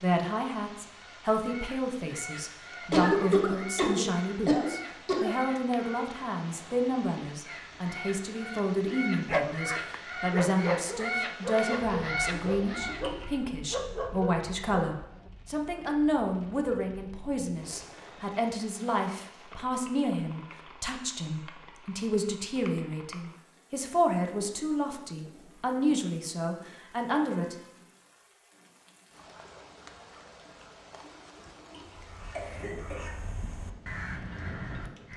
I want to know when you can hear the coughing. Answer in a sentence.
You can hear the coughing from 2.9 to 5.3 s, from 12.3 to 13.2 s and from 31.0 to 33.0 s.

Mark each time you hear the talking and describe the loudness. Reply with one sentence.
You can hear the talking from 0.0 to 27.6 s, at a steady volume.